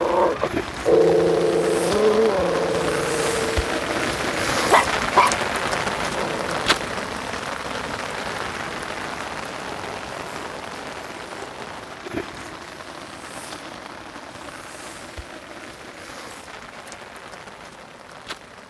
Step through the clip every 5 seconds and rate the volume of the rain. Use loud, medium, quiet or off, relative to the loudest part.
loud, loud, medium, quiet.